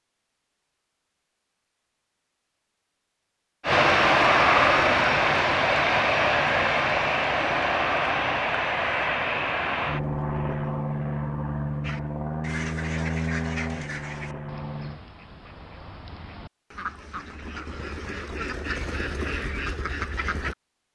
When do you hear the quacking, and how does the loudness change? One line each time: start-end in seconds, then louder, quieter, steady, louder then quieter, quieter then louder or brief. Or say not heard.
11.8-20.6 quieter then louder.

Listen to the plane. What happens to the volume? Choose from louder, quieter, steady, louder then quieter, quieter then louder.
quieter.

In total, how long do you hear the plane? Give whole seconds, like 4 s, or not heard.
11 s.